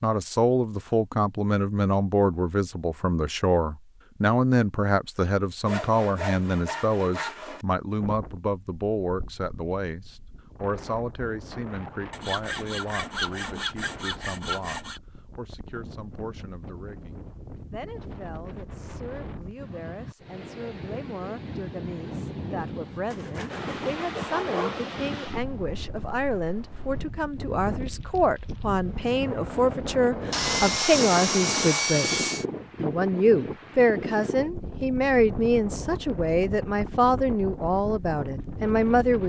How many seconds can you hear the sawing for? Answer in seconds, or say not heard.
9 s.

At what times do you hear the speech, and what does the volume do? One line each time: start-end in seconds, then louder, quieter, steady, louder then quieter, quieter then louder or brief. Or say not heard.
0.0-39.2 quieter then louder.